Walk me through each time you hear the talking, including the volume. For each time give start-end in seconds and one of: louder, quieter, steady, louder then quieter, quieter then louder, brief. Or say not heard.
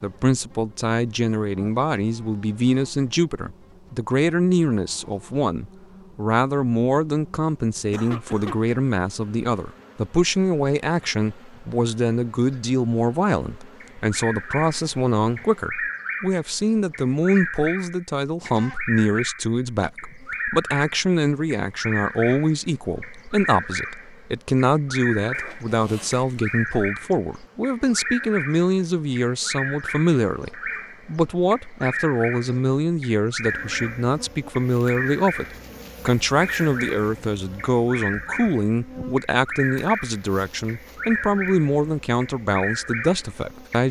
0.0-43.8 steady.